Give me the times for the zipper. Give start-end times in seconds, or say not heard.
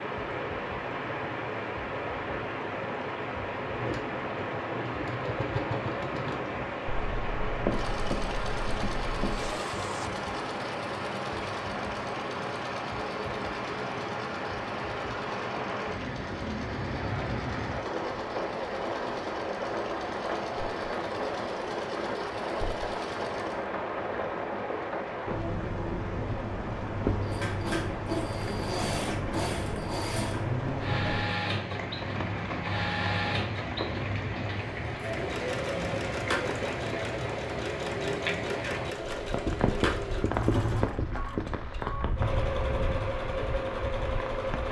9.3-10.2.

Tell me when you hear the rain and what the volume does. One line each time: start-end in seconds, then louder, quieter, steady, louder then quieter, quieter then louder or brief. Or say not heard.
0.0-44.6 steady.